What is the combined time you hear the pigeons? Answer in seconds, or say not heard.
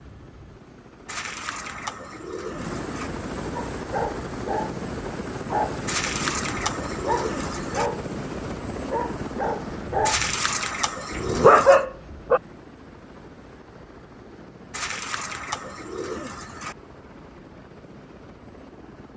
8 s.